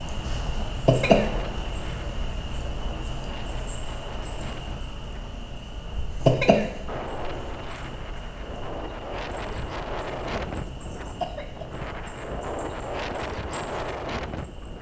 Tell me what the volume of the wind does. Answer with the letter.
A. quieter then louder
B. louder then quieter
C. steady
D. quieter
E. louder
E.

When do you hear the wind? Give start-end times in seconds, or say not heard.
0.0-14.7.